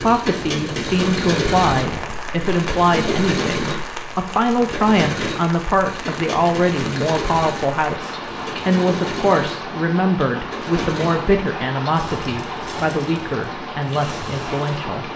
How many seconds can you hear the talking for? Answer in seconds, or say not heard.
15 s.